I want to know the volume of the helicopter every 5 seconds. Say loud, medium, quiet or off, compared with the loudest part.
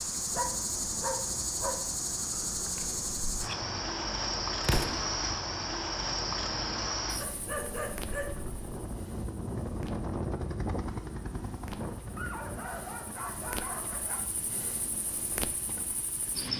medium, loud, loud, medium.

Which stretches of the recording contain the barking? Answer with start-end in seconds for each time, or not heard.
0.3-1.9, 7.2-8.6, 12.2-14.2.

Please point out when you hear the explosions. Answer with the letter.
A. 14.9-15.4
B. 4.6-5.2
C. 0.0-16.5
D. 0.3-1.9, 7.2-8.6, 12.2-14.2
B.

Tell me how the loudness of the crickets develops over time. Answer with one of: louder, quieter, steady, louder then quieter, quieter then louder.
quieter then louder.